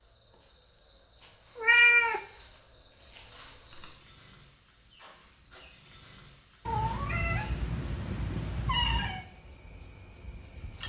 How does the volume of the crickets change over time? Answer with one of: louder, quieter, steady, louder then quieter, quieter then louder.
louder.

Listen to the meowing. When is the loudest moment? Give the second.
2 s.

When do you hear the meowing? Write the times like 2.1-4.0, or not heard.
1.6-2.2, 6.7-9.2.